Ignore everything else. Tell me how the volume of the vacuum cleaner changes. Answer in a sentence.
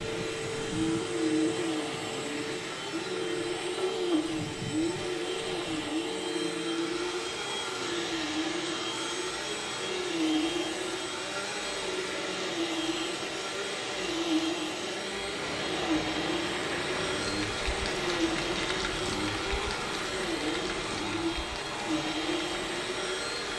The volume of the vacuum cleaner stays about the same.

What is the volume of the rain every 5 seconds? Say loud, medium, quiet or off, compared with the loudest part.
medium, medium, medium, loud, medium.